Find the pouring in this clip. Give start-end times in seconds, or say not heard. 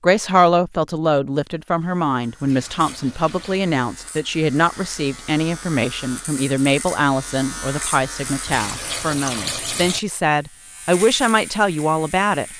2.4-3.6, 8.4-10.0.